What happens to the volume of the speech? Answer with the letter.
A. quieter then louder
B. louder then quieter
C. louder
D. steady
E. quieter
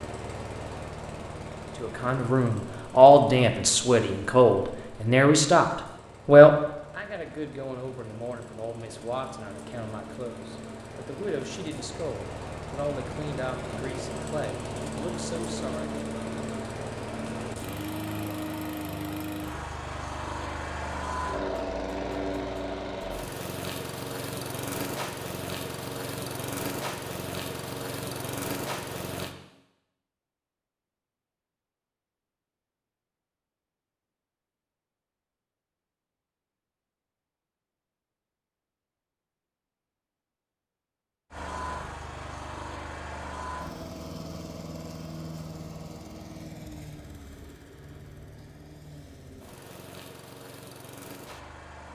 E.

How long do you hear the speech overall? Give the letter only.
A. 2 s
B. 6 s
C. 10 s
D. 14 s
D.